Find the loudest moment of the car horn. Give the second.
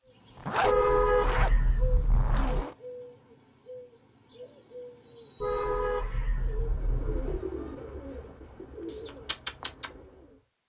1 s.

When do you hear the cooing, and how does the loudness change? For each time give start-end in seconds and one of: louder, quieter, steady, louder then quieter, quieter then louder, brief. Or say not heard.
0.1-10.3 quieter then louder.